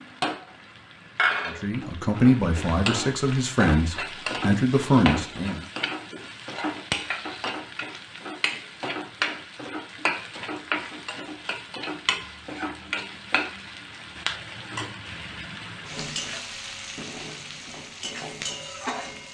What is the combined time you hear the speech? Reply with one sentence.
You can hear the speech for 4 seconds altogether.